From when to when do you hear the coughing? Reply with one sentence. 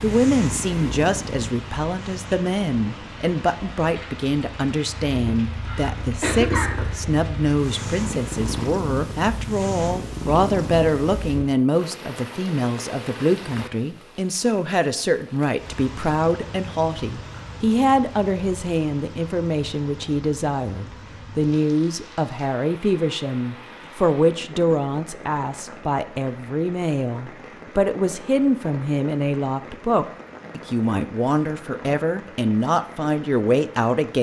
The coughing can be heard from 5.7 to 7.2 s.